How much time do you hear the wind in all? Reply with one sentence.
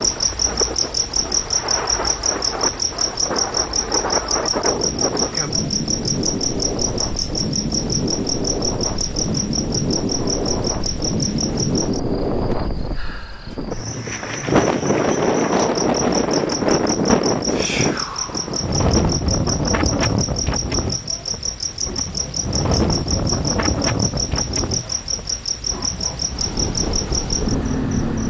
The wind can be heard for 28 seconds in total.